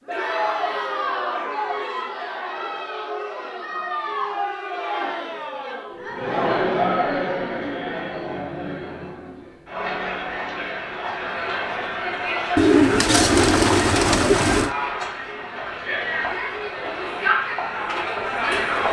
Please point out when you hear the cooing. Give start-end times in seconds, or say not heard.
12.6-14.8.